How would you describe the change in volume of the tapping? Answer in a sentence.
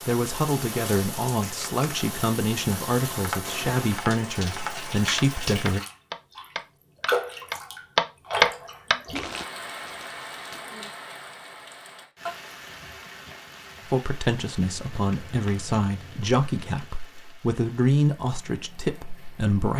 The loudness of the tapping goes up.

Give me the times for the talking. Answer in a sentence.
The talking can be heard from 0.1 to 5.8 s and from 13.9 to 19.7 s.